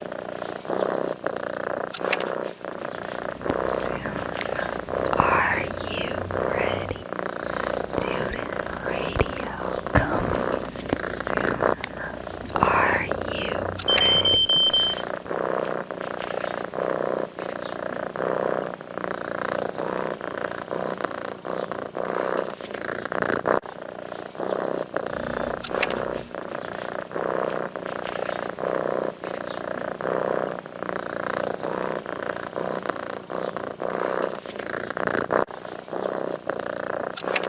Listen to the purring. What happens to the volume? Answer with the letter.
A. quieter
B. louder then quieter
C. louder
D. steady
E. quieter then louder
D.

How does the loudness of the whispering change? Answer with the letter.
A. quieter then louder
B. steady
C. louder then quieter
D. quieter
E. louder
B.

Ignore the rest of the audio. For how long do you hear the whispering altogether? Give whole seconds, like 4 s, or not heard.
12 s.